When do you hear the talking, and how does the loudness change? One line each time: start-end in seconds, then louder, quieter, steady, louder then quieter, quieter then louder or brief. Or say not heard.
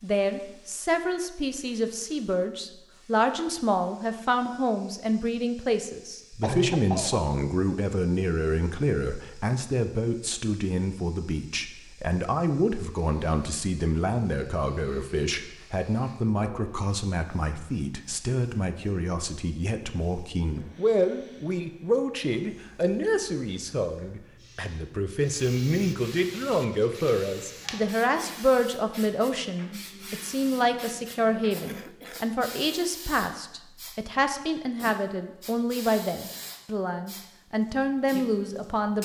0.0-38.9 steady.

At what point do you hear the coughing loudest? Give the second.
7 s.